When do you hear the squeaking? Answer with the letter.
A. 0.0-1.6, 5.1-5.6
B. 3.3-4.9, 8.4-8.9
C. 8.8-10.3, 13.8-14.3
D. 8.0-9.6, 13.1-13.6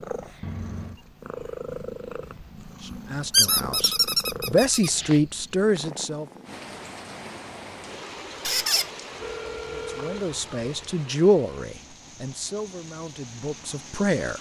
B.